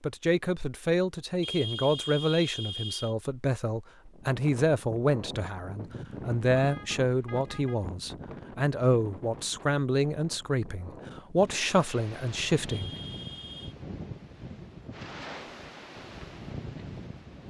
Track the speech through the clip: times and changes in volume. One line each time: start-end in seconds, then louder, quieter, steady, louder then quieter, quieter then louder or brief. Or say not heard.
0.0-12.9 steady.